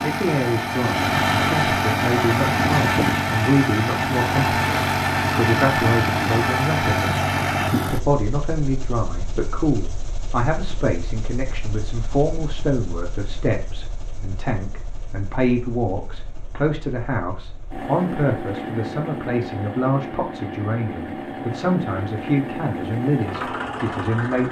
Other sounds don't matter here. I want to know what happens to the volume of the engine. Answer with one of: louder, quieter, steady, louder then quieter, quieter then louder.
quieter then louder.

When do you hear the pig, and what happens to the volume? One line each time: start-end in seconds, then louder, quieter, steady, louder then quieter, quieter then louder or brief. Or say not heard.
not heard.